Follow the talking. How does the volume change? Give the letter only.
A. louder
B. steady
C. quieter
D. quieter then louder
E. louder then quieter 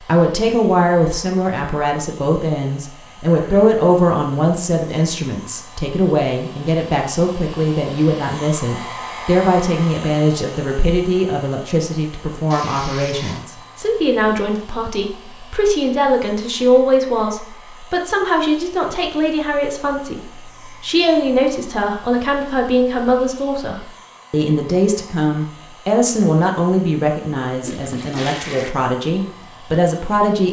B.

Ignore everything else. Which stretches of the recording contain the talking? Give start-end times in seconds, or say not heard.
0.1-20.2, 20.8-30.4.